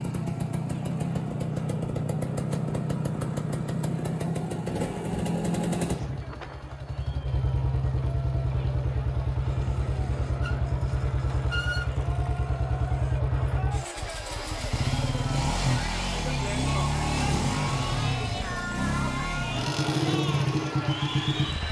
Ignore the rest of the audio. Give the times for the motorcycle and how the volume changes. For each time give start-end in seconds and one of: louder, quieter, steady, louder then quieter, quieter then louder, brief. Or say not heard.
0.0-21.6 steady.